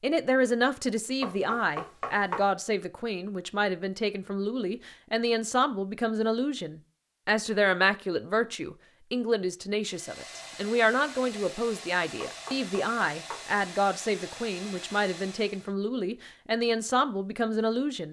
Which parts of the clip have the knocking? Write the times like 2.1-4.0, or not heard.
1.2-2.5, 12.2-13.4.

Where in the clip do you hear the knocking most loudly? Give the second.
2 s.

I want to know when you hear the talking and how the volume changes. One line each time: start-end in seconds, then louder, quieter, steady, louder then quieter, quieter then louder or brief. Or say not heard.
0.0-18.0 steady.